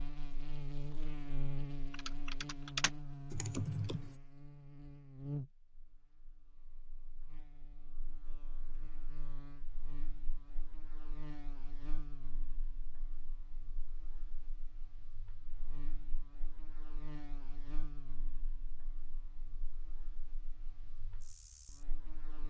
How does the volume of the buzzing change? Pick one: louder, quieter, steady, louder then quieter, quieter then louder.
quieter.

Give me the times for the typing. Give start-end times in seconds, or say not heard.
1.9-4.1.